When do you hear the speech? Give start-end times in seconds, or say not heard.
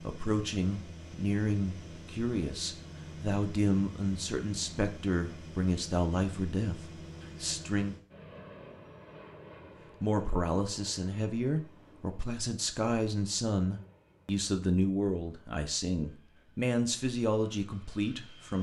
0.0-8.0, 10.0-18.5.